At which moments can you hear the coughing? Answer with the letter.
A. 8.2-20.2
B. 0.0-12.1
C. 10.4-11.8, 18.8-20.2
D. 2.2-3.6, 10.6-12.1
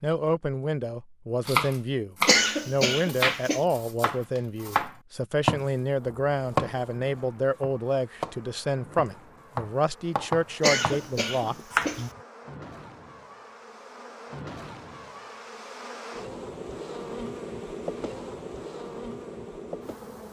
D.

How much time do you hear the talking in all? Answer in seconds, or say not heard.
12 s.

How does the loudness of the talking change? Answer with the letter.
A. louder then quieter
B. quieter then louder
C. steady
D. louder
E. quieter
C.